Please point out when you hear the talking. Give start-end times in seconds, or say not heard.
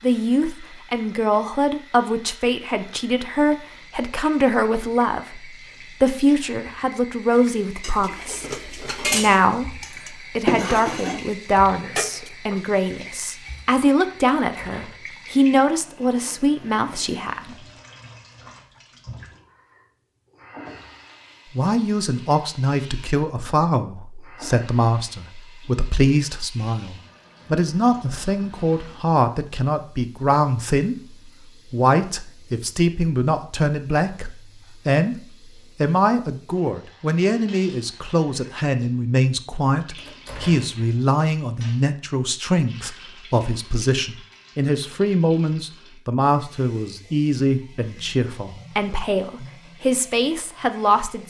0.0-17.6, 21.6-51.2.